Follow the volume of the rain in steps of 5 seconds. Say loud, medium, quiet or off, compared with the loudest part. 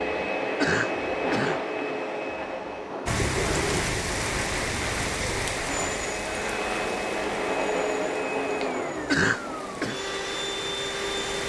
loud, medium, medium.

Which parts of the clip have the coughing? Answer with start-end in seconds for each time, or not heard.
0.6-1.6, 9.1-9.9.